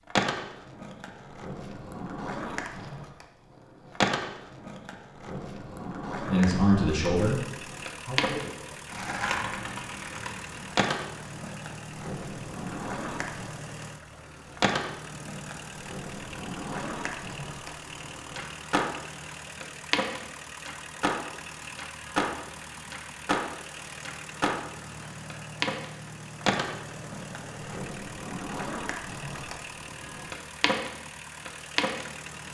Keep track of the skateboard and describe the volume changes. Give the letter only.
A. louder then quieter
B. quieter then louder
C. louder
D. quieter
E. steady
E.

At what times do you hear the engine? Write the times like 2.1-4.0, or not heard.
7.2-32.5.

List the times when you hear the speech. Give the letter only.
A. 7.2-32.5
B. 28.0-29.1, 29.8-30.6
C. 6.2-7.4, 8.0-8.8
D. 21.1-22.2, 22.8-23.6
C.